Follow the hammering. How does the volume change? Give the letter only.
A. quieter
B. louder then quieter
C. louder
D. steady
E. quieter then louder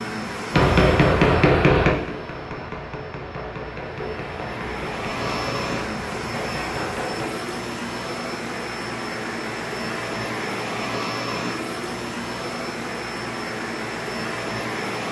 A.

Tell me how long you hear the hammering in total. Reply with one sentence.
The hammering can be heard for 7 seconds in total.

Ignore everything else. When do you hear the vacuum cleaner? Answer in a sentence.
The vacuum cleaner can be heard from 0.0 to 15.0 s.